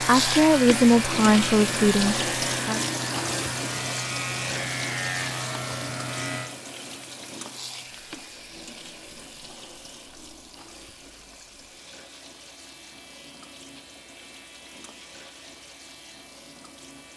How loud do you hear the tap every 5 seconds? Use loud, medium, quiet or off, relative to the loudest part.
loud, medium, quiet, quiet.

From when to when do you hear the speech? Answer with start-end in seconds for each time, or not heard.
0.0-2.8.